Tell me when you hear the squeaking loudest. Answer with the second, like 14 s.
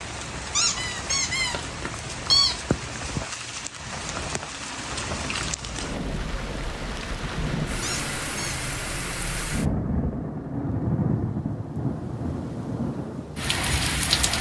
2 s.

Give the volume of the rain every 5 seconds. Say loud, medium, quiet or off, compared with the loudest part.
medium, loud, loud.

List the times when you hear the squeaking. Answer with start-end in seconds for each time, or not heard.
0.6-2.5, 7.8-8.7.